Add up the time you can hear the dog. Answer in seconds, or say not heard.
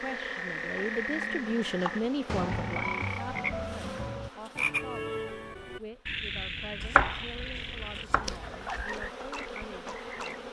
not heard.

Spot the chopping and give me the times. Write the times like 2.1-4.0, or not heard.
0.8-2.0, 6.8-8.8.